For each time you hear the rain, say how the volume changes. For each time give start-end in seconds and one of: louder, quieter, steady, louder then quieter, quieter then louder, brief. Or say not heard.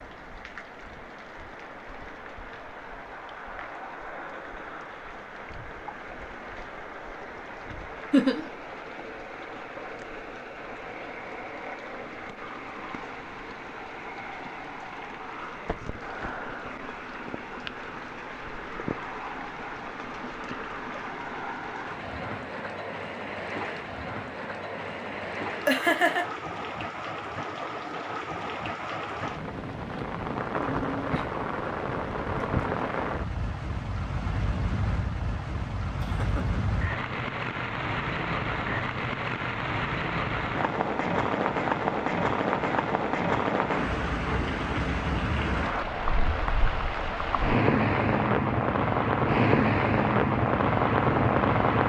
0.0-51.8 louder.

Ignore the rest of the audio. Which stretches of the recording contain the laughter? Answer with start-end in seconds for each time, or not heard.
8.1-8.5, 25.6-26.2, 36.0-36.6.